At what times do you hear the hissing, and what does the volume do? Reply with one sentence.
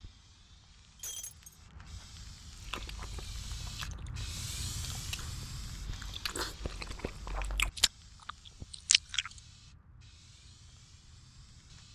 The hissing can be heard from 0.0 to 11.9 s, getting louder then quieter.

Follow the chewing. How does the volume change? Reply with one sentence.
The loudness of the chewing goes up.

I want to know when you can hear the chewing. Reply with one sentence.
You can hear the chewing from 2.5 to 9.3 s.